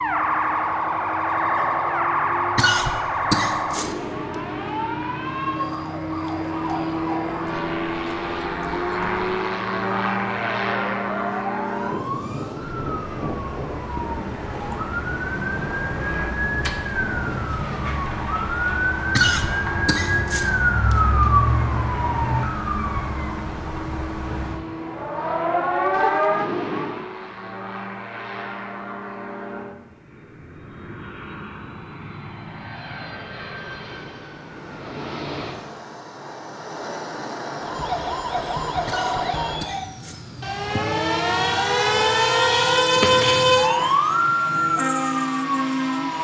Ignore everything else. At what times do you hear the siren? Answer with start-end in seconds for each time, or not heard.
0.0-27.1, 37.6-46.1.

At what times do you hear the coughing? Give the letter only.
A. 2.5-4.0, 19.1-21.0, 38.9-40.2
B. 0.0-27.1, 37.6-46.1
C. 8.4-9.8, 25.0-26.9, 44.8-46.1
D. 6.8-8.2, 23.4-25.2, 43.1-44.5
A.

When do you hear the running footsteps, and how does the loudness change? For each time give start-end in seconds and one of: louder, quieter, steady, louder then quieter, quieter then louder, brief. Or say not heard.
not heard.